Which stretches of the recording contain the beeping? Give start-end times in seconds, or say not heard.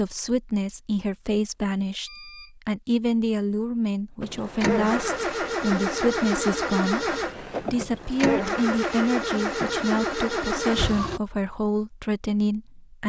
2.0-2.5.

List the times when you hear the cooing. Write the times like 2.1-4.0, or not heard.
not heard.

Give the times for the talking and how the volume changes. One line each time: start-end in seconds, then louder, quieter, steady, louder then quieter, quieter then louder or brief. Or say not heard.
0.0-13.0 steady.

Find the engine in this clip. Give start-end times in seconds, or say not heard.
4.2-11.2.